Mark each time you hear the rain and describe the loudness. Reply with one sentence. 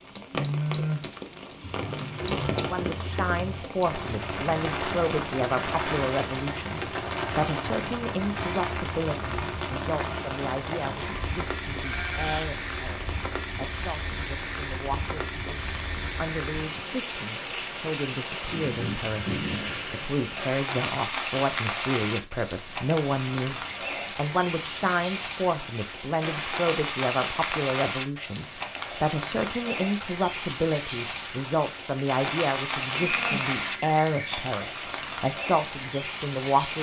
The rain can be heard from 0.0 to 36.7 s, at a steady volume.